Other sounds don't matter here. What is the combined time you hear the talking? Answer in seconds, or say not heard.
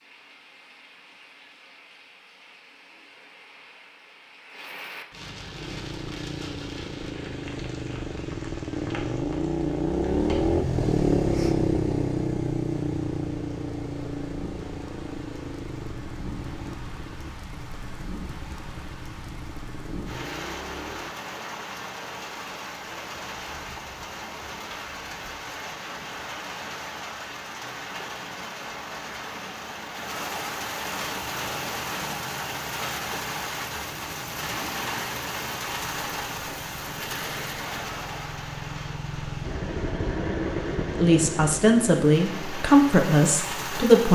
3 s.